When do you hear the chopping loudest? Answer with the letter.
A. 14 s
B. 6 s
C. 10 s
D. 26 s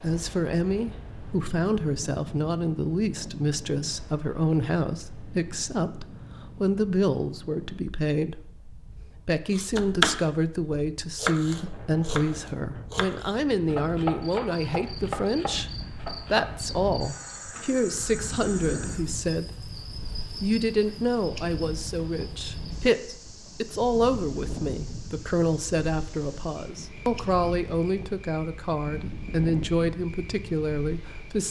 C.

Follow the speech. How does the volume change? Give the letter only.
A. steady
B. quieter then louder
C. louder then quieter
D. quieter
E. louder
A.